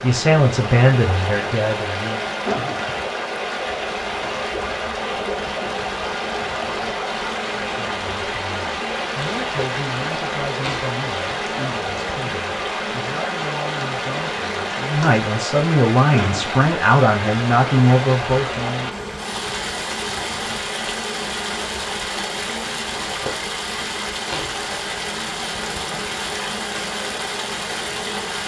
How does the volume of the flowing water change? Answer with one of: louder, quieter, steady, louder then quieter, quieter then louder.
steady.